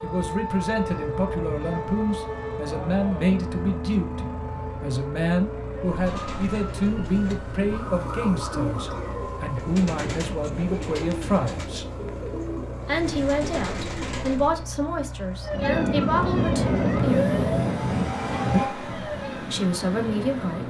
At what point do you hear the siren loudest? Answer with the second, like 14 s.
17 s.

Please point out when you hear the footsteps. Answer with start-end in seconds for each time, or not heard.
not heard.